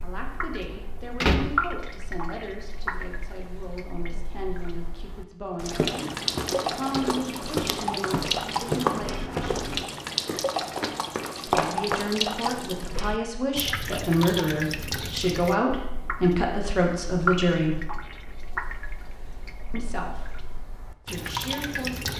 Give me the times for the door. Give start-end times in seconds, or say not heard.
0.7-1.5.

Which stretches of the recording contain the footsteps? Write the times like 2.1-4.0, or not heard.
5.6-12.1.